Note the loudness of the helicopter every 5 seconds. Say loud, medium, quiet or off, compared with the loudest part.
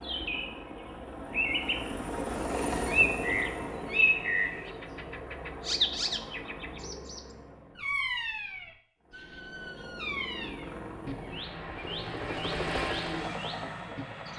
loud, medium, loud.